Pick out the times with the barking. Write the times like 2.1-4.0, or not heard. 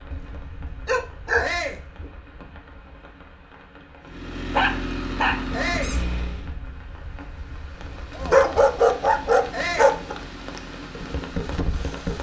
0.1-2.0, 4.5-6.0, 8.1-10.2.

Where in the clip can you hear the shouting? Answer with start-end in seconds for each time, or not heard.
1.4-1.9, 5.5-6.0, 9.5-9.9.